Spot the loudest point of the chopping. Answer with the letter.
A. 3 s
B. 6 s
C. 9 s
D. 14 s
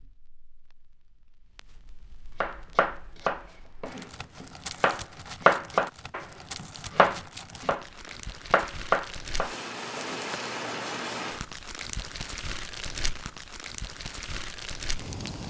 B.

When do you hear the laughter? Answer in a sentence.
The laughter can't be heard in this clip.